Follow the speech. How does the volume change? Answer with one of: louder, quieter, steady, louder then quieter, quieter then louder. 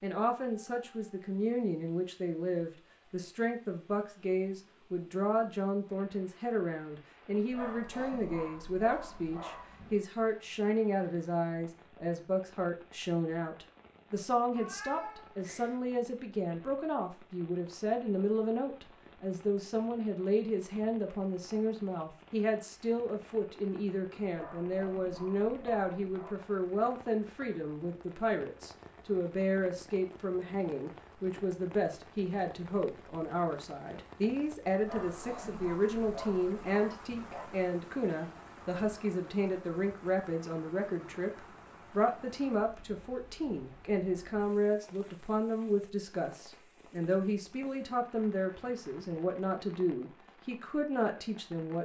steady.